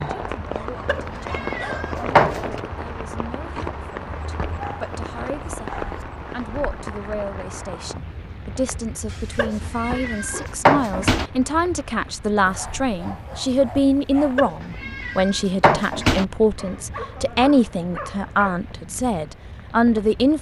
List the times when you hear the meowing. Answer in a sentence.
You can hear the meowing from 0.8 to 2.6 s, from 9.3 to 11.3 s and from 14.3 to 16.2 s.